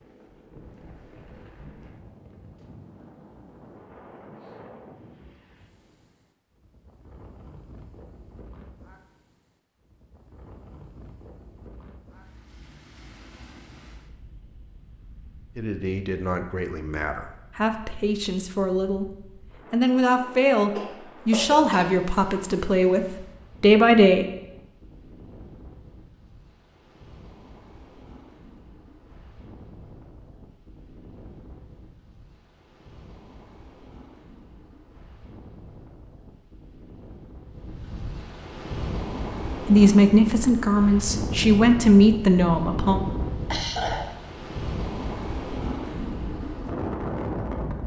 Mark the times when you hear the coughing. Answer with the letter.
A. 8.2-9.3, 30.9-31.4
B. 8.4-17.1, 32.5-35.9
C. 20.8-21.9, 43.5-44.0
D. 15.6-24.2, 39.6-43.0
C.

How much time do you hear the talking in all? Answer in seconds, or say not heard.
12 s.